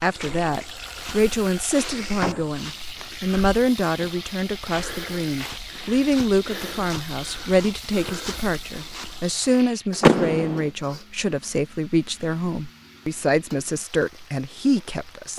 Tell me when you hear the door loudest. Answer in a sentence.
The loudest moment of the door is at 10 seconds.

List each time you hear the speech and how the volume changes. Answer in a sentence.
The speech can be heard from 0.0 to 15.3 s, at a steady volume.